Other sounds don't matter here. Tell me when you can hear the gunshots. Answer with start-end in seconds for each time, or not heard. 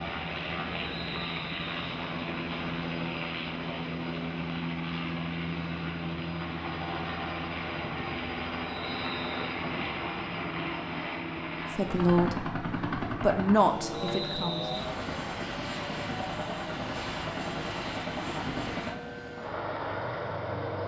not heard.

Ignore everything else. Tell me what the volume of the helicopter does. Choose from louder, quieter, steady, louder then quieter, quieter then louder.
steady.